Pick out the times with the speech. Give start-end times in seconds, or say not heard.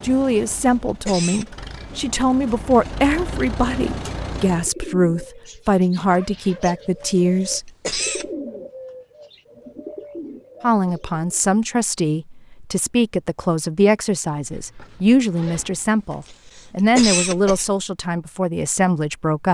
0.0-7.7, 10.6-19.5.